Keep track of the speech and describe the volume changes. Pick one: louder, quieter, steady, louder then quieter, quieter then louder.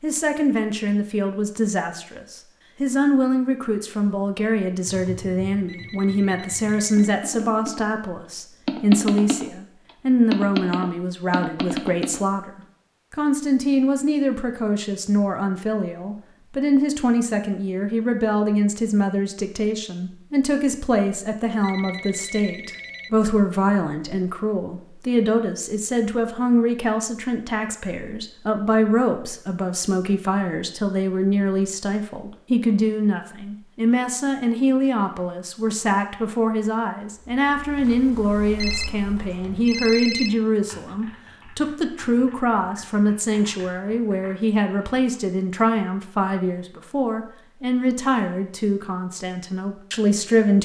steady.